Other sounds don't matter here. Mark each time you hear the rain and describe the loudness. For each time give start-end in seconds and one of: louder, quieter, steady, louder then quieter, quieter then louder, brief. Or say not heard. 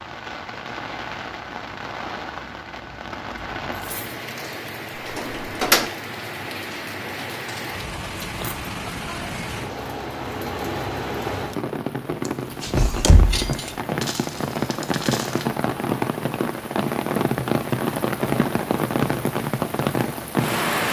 0.0-20.8 louder.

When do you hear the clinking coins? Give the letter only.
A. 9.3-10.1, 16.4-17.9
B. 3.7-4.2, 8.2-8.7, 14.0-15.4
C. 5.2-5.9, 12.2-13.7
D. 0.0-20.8
B.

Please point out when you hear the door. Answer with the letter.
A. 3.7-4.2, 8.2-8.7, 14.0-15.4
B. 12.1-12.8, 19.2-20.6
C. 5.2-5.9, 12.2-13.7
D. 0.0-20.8
C.